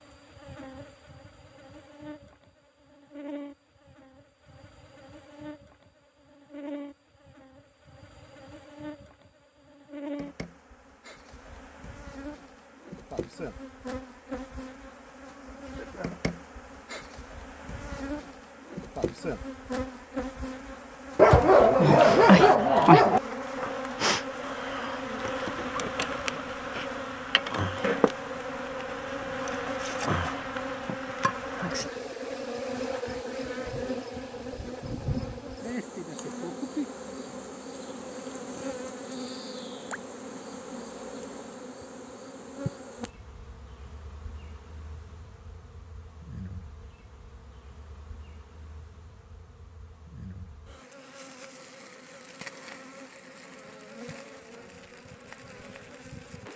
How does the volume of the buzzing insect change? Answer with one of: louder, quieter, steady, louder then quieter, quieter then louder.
louder then quieter.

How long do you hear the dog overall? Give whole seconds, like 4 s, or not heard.
2 s.